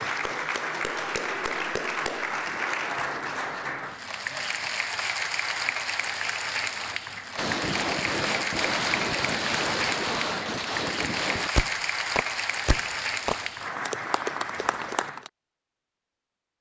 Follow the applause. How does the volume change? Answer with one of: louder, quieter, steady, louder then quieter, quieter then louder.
steady.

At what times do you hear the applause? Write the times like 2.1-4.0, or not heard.
0.0-15.3.